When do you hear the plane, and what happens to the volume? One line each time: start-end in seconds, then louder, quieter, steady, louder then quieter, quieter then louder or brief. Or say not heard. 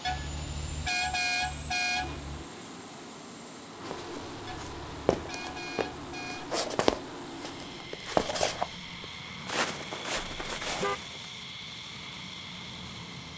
0.0-13.3 steady.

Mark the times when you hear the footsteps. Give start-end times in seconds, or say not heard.
3.9-11.2.